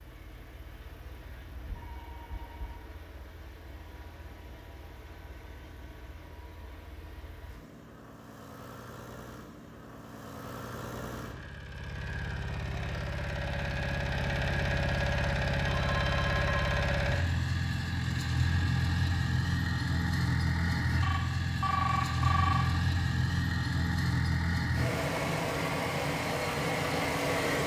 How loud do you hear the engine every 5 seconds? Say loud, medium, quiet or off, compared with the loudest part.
quiet, quiet, medium, loud, loud, loud.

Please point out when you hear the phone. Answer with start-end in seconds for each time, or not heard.
1.5-2.8, 15.6-16.9, 21.0-22.6.